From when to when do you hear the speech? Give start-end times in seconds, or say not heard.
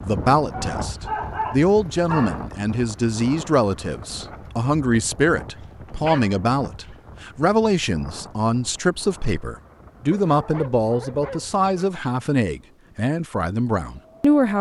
0.0-14.5.